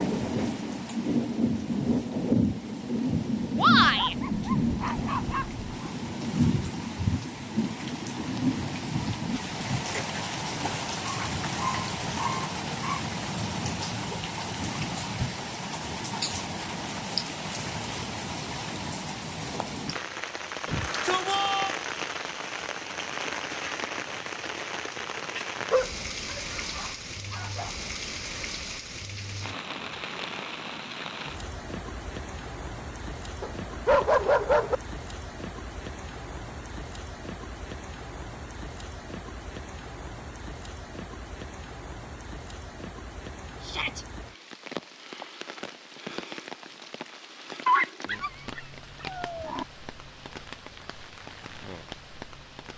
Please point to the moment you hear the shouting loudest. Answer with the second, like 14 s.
4 s.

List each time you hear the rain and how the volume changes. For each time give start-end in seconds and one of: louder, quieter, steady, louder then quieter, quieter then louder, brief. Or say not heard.
0.0-52.7 quieter.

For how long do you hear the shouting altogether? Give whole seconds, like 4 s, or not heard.
2 s.